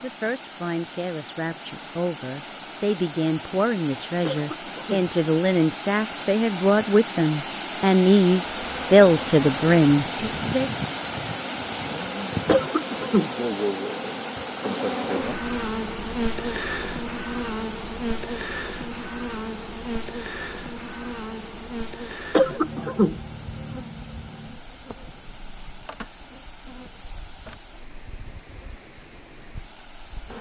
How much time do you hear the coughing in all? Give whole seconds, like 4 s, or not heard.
3 s.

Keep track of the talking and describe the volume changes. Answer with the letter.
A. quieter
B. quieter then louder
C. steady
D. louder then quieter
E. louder
E.